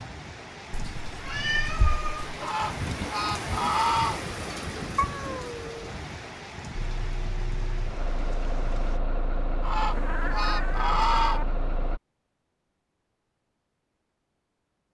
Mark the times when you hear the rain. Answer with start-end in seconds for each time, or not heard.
0.0-9.0.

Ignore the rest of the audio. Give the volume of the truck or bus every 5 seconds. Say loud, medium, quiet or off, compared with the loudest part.
off, loud, loud.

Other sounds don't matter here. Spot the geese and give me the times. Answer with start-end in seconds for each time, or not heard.
2.4-4.2, 9.6-11.4.